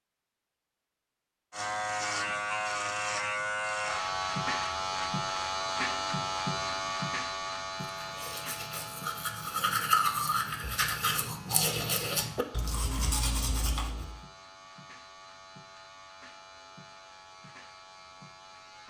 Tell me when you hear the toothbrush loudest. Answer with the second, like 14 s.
10 s.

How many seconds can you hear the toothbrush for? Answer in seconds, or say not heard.
6 s.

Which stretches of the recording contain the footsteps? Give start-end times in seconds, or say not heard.
not heard.